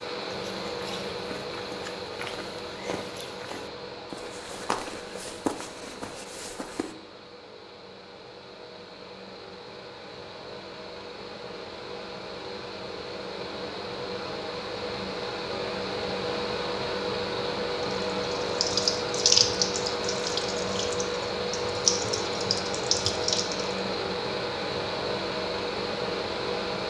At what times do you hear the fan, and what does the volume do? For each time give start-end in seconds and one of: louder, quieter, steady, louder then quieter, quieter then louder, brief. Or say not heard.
0.0-26.8 quieter then louder.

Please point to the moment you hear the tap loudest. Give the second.
19 s.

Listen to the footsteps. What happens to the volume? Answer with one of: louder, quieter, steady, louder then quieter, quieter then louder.
louder.